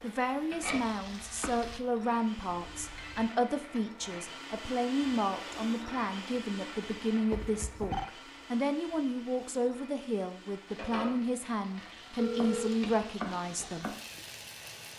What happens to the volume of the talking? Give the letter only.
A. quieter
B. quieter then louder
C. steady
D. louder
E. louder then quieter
C.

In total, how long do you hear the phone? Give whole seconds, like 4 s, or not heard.
2 s.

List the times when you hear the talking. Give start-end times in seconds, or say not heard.
0.0-13.9.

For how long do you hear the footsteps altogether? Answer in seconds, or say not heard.
not heard.